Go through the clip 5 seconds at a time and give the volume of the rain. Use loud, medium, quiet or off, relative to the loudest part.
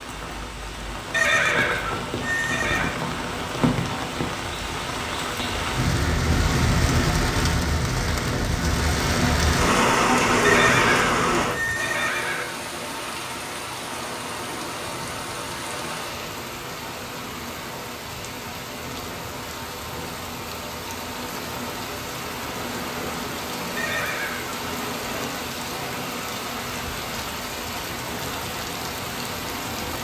medium, loud, loud, medium, medium, medium.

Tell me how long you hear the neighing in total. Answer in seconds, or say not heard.
5 s.